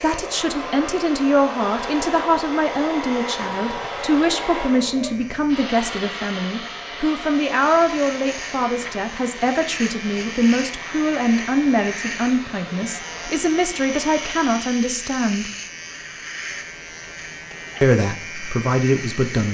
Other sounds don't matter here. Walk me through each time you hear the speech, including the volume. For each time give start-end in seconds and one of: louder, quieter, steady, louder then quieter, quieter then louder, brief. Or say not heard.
0.0-15.5 steady
17.8-19.4 brief.